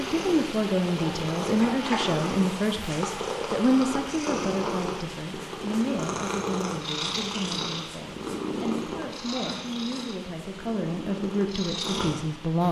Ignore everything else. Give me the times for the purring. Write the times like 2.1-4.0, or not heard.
0.0-12.6.